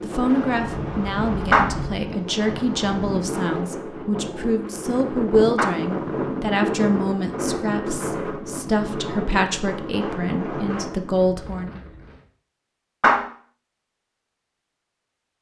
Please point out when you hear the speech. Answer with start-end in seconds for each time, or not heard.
0.0-11.8.